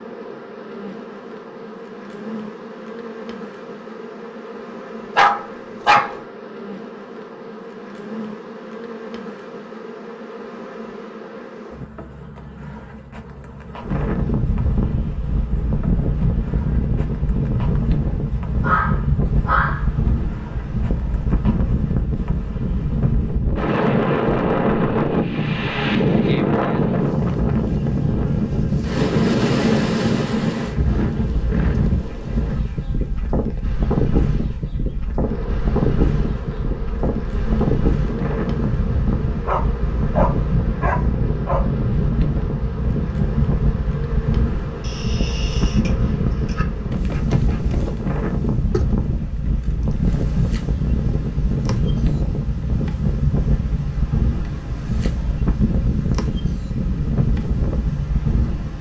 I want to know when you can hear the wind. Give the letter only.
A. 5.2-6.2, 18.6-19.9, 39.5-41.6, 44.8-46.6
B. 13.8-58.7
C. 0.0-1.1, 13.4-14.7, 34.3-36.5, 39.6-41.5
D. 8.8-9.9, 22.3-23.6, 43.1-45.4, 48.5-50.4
B.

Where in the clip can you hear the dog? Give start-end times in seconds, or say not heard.
5.2-6.2, 18.6-19.9, 39.5-41.6, 44.8-46.6.